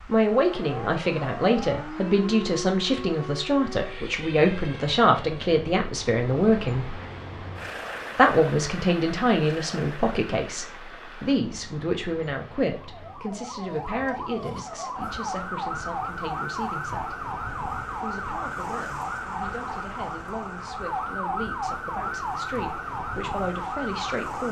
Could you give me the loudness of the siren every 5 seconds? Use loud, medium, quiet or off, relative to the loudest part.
medium, off, medium, loud, loud.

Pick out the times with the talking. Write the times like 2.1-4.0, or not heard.
0.1-7.0, 8.2-17.1, 18.0-24.4.